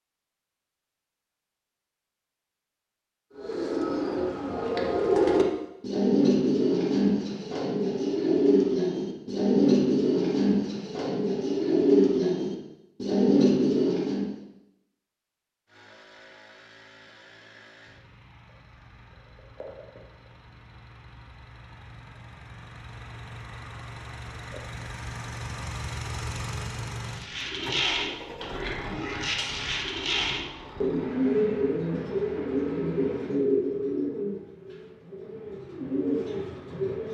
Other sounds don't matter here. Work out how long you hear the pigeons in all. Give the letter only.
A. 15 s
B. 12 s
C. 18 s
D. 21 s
D.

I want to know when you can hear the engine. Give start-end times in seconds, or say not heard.
15.7-33.4.